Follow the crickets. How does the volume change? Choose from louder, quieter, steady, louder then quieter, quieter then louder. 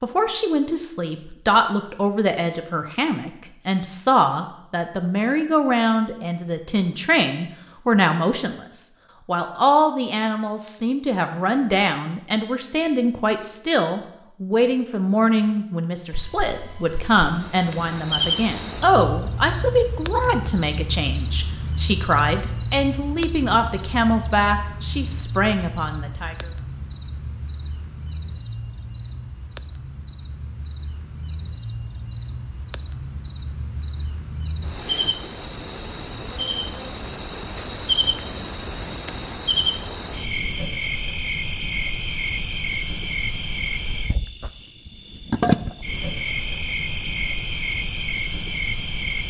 quieter then louder.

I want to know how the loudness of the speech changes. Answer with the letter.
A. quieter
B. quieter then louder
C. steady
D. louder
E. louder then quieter
C.